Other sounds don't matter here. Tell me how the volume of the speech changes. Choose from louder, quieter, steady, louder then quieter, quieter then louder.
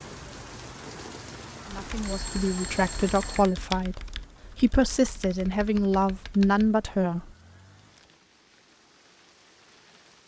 louder.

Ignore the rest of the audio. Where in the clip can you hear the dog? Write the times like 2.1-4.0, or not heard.
not heard.